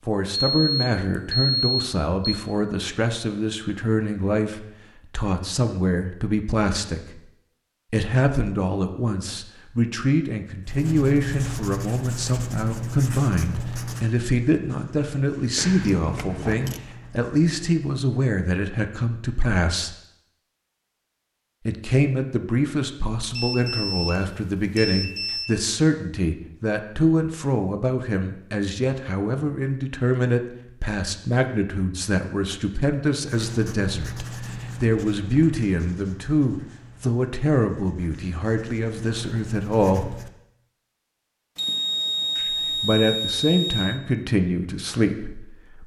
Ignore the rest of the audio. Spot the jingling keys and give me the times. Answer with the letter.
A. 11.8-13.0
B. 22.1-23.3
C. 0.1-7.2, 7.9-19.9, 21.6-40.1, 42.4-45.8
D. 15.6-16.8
D.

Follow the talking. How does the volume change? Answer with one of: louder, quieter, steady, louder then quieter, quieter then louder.
steady.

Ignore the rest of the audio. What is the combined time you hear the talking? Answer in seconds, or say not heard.
41 s.